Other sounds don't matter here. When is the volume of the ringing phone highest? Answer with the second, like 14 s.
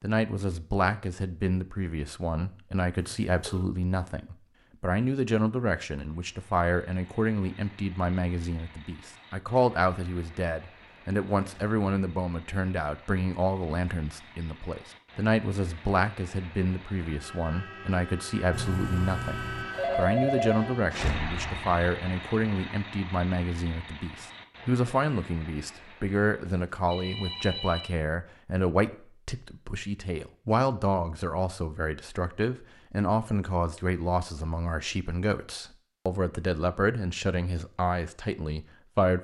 20 s.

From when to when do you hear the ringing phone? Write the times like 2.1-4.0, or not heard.
3.0-3.6, 18.5-20.6, 26.4-27.9.